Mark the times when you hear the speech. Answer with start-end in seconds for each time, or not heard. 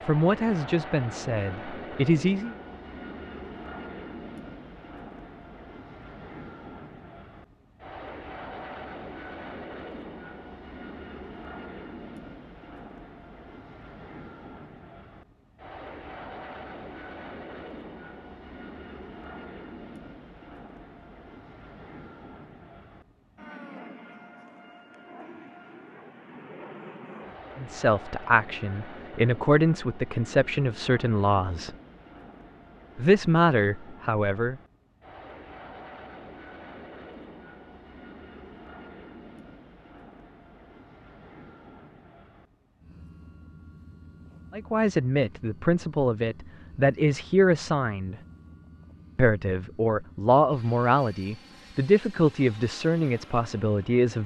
0.0-2.5, 27.6-31.8, 33.0-34.6, 44.5-48.1, 49.1-54.2.